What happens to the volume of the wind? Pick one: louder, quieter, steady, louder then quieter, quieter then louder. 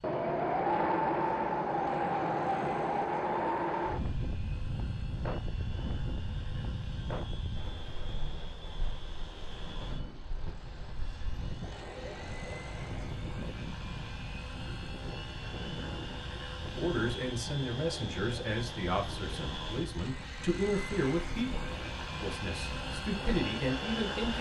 quieter.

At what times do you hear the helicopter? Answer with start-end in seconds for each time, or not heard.
0.0-24.3.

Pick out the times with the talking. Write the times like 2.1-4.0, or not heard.
16.8-24.3.